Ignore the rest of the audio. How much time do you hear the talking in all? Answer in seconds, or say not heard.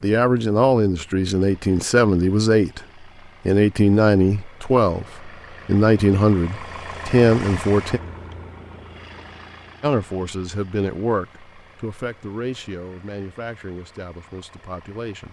13 s.